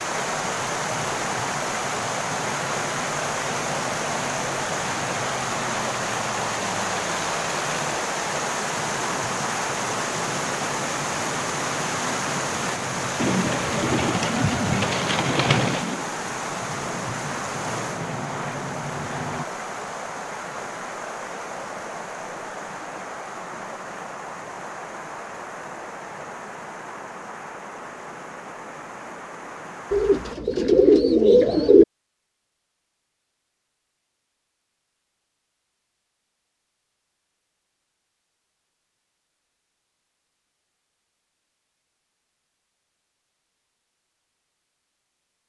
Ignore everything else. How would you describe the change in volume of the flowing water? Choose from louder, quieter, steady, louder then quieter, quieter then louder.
quieter.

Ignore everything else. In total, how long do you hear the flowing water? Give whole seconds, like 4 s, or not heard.
30 s.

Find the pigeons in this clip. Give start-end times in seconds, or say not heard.
13.2-16.1, 29.9-31.9.